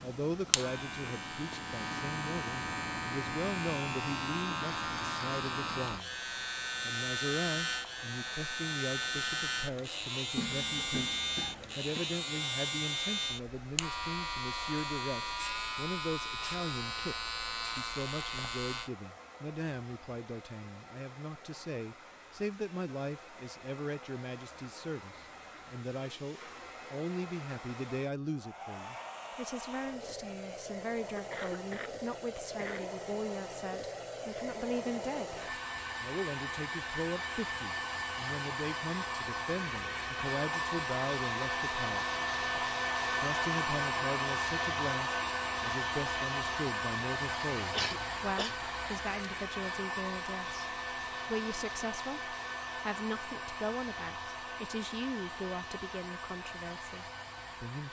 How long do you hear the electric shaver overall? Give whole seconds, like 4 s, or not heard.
19 s.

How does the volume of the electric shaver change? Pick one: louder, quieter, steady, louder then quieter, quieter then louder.
steady.